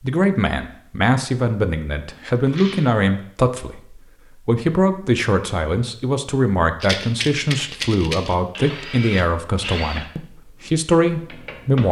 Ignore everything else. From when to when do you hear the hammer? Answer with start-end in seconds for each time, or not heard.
not heard.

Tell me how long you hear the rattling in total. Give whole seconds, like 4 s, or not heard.
2 s.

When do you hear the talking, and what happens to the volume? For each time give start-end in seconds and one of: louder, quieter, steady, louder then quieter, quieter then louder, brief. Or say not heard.
0.0-11.8 steady.